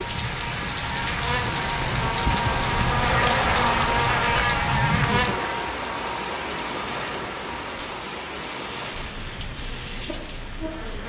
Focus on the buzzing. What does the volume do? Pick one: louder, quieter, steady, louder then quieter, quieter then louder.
louder then quieter.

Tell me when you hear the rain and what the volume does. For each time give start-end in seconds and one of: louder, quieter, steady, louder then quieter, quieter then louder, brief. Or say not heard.
0.0-11.0 quieter.